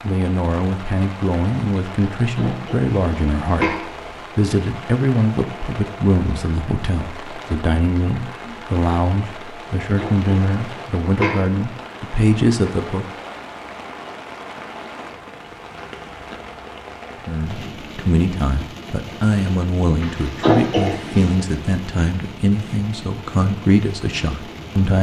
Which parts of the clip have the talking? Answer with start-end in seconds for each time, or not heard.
0.0-13.1, 17.2-24.9.